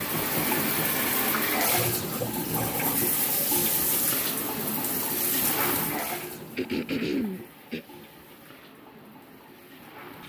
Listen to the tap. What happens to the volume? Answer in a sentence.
The volume of the tap goes down.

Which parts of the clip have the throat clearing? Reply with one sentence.
You can hear the throat clearing from 1.6 to 3.0 s and from 6.5 to 7.8 s.